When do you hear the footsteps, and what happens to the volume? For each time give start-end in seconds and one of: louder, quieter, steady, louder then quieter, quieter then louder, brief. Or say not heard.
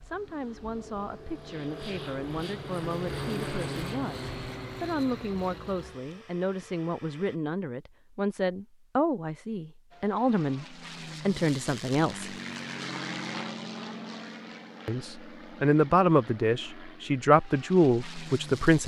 not heard.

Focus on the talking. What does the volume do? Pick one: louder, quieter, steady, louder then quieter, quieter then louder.
louder.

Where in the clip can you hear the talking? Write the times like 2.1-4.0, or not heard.
0.0-12.3, 14.8-18.8.